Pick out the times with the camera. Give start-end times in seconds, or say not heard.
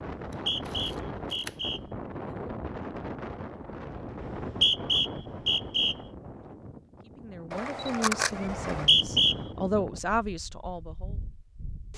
0.3-1.9, 7.5-8.9.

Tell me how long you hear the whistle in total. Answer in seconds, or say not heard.
4 s.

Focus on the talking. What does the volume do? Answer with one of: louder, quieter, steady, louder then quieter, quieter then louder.
quieter then louder.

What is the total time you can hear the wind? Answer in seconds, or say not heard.
12 s.